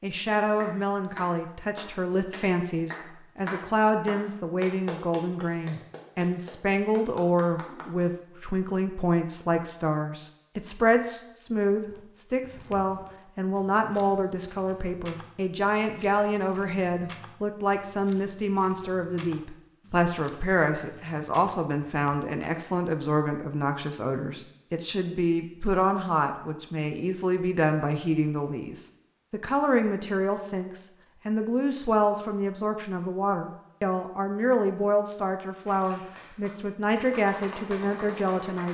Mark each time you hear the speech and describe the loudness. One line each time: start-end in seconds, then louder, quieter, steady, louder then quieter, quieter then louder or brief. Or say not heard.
0.0-38.6 steady.